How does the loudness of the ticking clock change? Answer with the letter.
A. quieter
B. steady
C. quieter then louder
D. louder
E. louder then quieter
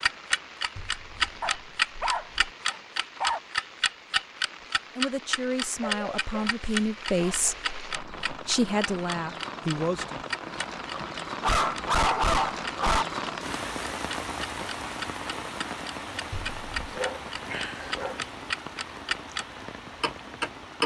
C.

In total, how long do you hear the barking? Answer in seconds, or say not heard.
7 s.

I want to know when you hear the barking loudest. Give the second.
12 s.